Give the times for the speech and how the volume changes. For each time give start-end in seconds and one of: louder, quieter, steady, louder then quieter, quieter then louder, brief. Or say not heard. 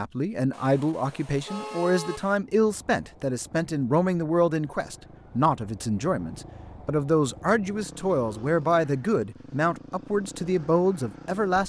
0.0-11.6 steady.